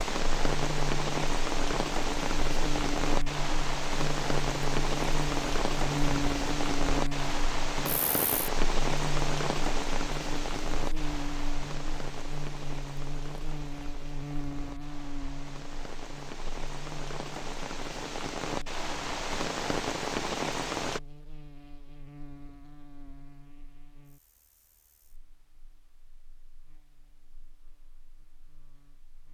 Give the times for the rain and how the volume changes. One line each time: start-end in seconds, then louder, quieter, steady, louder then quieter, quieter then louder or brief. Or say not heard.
0.0-21.0 quieter then louder.